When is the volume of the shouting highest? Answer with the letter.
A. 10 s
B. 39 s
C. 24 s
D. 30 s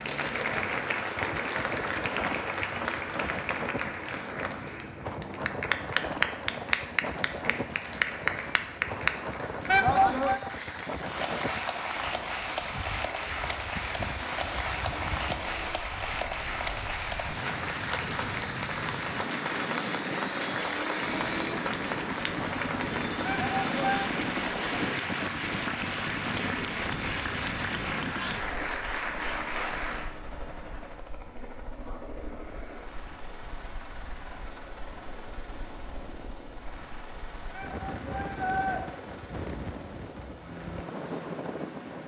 A.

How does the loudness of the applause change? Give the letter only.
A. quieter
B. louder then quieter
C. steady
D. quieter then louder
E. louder
C.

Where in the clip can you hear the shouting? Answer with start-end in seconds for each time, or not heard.
9.7-10.4, 23.2-24.1, 37.5-38.8.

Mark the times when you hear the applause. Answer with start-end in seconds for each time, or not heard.
0.0-30.1.